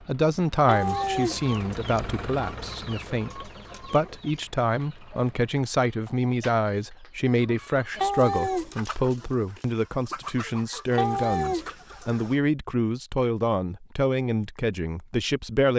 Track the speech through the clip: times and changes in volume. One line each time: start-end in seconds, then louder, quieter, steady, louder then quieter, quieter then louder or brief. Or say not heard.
0.1-15.7 steady.